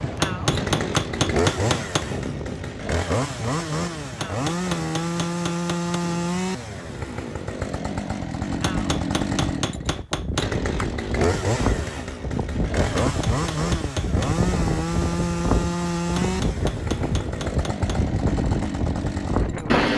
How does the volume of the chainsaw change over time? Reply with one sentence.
The volume of the chainsaw stays about the same.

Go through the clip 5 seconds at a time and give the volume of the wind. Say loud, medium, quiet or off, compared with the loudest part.
medium, quiet, loud, loud.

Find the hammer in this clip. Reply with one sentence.
The hammer can be heard from 0.1 to 2.0 s, from 4.0 to 6.0 s, from 8.5 to 10.4 s, from 12.8 to 14.3 s and from 16.0 to 18.0 s.